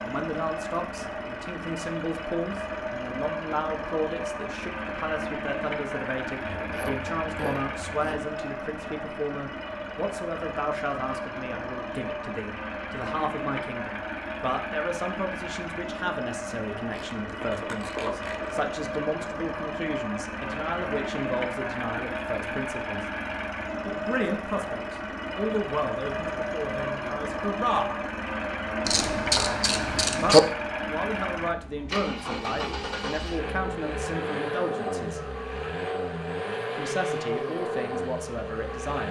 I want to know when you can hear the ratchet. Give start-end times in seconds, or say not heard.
6.4-8.2, 16.9-18.7, 28.9-30.4.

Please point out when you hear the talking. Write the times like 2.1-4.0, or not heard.
0.0-23.0, 23.9-27.9, 30.2-35.2, 36.8-39.0.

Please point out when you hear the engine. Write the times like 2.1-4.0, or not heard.
0.0-39.0.